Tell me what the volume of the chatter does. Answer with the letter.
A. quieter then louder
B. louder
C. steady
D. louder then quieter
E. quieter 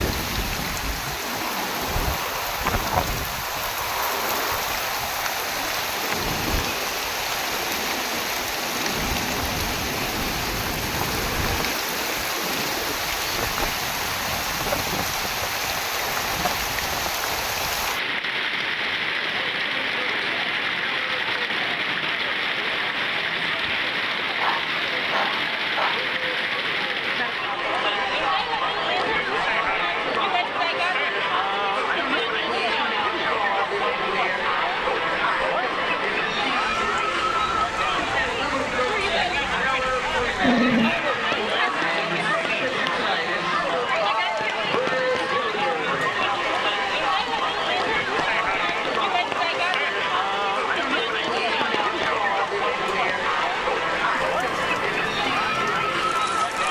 B.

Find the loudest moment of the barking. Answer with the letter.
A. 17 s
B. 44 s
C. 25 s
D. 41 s
D.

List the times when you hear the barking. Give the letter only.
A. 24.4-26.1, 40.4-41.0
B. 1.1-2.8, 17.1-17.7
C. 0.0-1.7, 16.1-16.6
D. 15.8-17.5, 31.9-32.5
A.